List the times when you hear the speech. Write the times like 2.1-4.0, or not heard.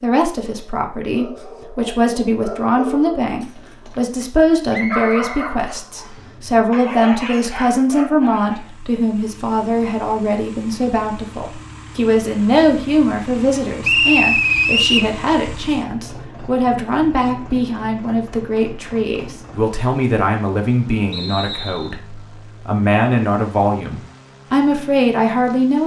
0.0-25.8.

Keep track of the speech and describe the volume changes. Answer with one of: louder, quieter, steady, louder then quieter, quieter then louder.
steady.